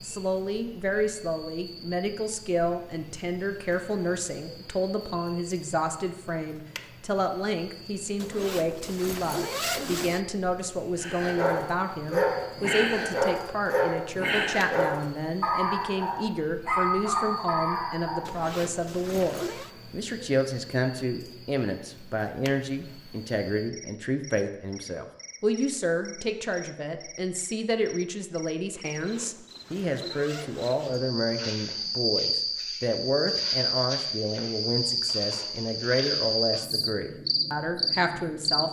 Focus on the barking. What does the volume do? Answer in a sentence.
The loudness of the barking stays about the same.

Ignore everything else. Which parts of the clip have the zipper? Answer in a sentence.
The zipper can be heard from 8.2 to 10.2 s, from 18.2 to 19.7 s and from 28.9 to 31.1 s.